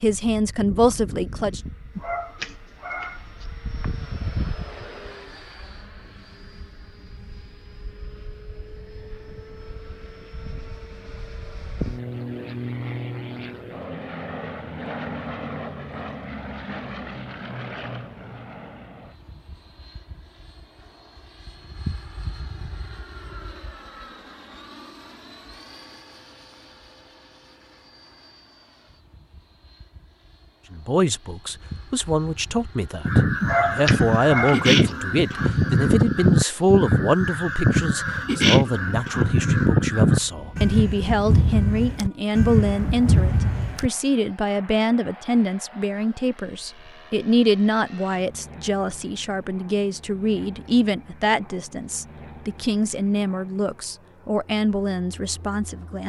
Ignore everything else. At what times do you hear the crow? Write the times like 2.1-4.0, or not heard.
33.0-43.9.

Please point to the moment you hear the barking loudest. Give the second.
34 s.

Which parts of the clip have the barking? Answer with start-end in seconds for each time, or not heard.
1.9-3.5, 33.4-34.9.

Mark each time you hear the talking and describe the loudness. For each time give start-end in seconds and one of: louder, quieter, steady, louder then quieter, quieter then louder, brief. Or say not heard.
0.0-1.6 brief
30.7-56.0 steady.